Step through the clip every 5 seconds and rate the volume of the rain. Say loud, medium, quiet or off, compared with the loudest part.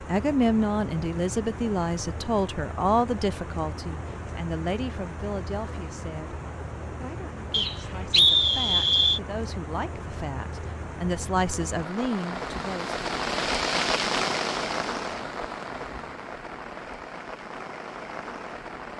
medium, medium, loud, medium.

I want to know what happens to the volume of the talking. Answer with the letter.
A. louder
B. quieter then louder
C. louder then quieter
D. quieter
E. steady
B.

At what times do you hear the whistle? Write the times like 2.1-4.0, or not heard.
7.5-9.2.